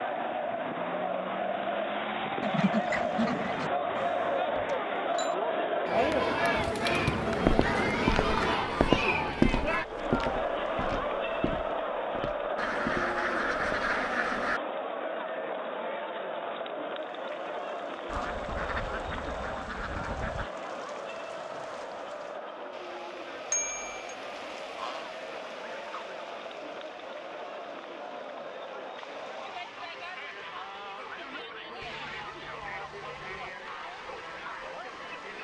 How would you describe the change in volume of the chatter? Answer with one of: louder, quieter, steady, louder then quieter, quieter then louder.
quieter.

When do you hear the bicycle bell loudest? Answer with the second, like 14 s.
24 s.